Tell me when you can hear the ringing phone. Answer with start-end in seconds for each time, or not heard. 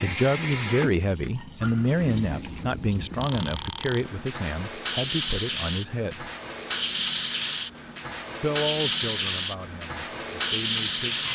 3.2-4.0.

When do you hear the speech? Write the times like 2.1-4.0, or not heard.
0.0-6.3, 8.4-11.3.